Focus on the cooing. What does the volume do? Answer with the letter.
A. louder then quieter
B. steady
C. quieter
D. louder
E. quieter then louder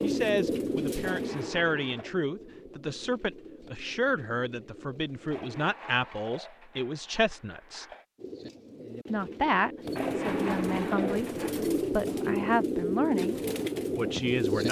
E.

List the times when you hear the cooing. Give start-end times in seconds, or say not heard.
0.0-5.8, 8.2-14.6.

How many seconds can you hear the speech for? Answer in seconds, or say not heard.
13 s.